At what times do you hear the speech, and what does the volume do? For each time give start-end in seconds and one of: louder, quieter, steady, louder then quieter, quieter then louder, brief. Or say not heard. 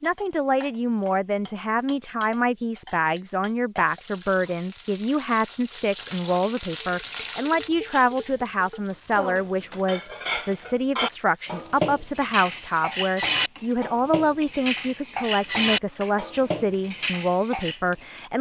0.0-18.3 steady.